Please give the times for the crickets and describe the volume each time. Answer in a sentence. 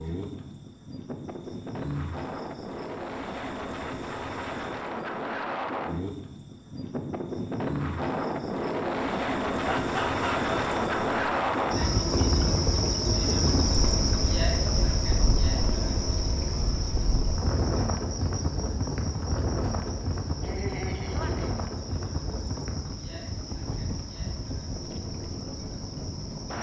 You can hear the crickets from 0.0 to 26.5 s, getting louder then quieter.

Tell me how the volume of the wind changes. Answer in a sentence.
The volume of the wind goes up, then down.